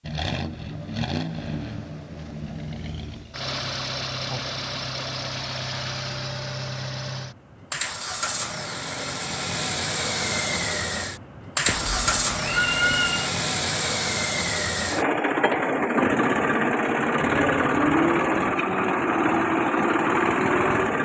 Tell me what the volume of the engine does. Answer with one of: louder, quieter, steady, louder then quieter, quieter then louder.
louder.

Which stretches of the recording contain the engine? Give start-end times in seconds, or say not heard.
0.0-21.0.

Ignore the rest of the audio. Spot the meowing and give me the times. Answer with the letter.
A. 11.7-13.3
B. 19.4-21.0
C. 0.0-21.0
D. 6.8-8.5
A.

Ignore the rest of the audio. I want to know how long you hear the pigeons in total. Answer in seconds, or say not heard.
not heard.